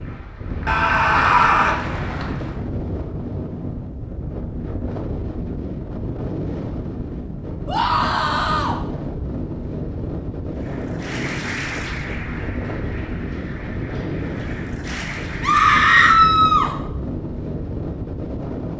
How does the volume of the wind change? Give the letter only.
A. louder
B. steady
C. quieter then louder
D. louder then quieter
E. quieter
B.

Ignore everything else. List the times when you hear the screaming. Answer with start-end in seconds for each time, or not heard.
0.7-1.8, 7.7-8.8, 15.4-16.7.